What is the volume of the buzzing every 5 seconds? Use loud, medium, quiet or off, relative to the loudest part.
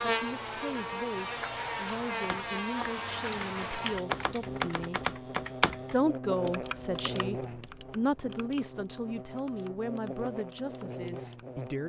loud, medium, medium.